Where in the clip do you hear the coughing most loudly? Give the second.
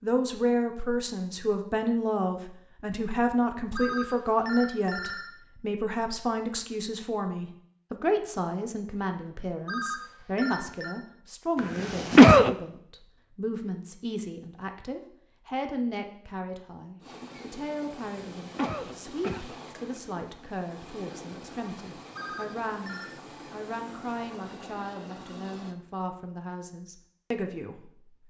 12 s.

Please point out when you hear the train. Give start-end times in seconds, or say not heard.
17.0-25.8.